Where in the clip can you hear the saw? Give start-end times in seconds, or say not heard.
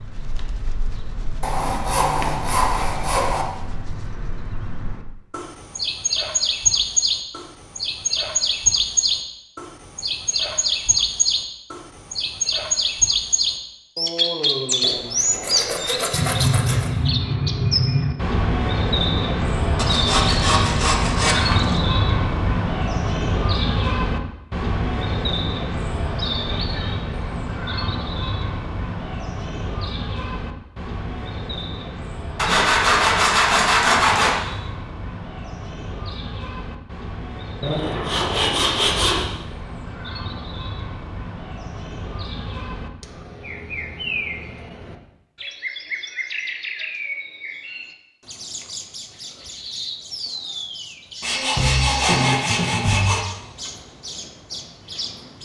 1.4-3.5, 14.8-16.9, 19.8-21.8, 32.4-34.4, 37.6-39.2, 51.2-53.2.